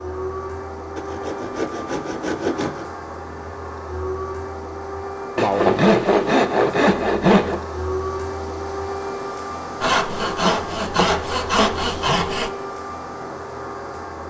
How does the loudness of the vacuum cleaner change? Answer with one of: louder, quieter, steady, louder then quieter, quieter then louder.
steady.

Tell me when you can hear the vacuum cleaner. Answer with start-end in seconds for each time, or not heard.
0.0-14.2.